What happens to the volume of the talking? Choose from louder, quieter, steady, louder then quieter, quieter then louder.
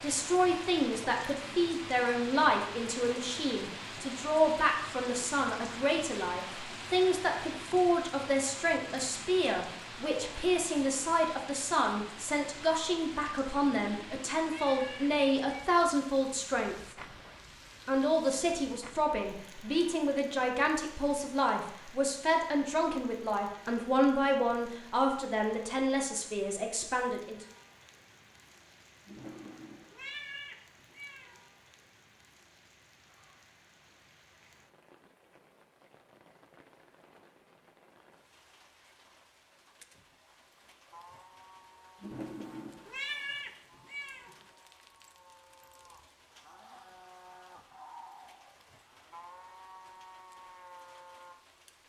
steady.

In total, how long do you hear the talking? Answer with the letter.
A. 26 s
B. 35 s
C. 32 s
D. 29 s
A.